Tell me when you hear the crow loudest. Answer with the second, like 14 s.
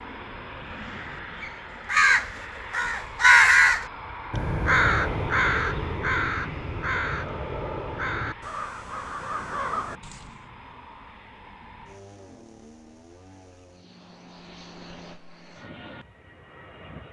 3 s.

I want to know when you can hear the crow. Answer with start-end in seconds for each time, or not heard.
0.8-10.4.